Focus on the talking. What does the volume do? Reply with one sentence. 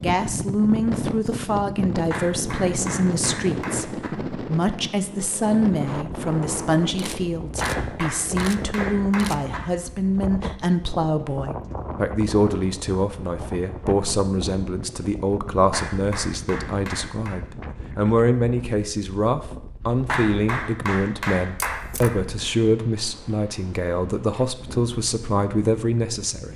The loudness of the talking stays about the same.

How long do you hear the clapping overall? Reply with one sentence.
The clapping can be heard for 8 seconds in total.